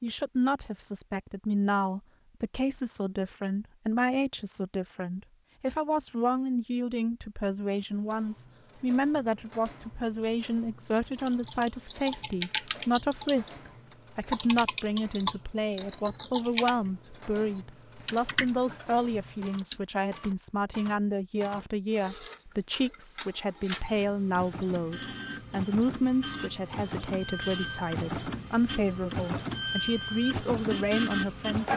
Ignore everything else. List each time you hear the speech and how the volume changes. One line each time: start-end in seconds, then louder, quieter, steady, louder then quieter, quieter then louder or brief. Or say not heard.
0.0-31.7 steady.